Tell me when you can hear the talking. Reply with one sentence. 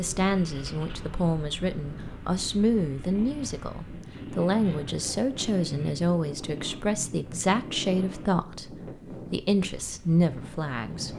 You can hear the talking from 0.0 to 11.1 s.